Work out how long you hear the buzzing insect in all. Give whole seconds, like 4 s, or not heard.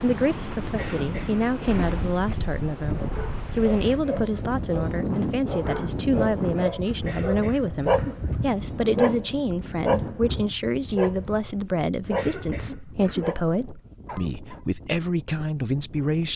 not heard.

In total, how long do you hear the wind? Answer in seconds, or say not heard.
16 s.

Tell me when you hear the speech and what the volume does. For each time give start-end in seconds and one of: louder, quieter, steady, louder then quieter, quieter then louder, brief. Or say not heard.
0.0-16.3 steady.